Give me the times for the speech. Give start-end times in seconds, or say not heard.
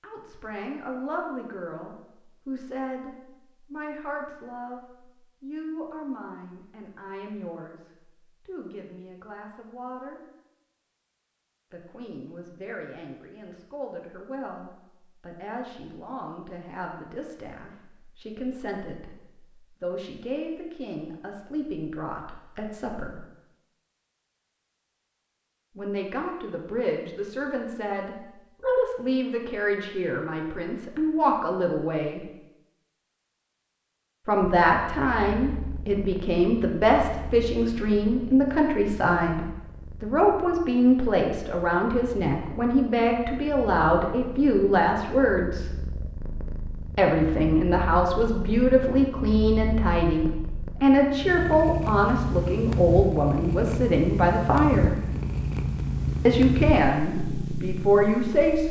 0.0-10.2, 11.7-23.2, 25.8-32.2, 34.2-45.7, 47.0-55.0, 56.2-58.6.